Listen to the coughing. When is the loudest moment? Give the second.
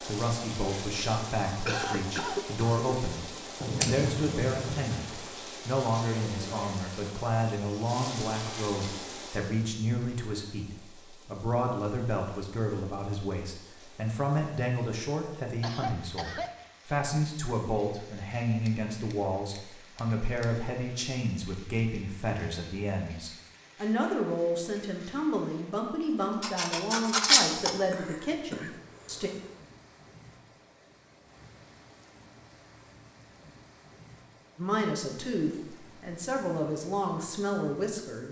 2 s.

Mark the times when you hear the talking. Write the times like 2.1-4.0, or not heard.
0.0-29.3, 34.5-38.2.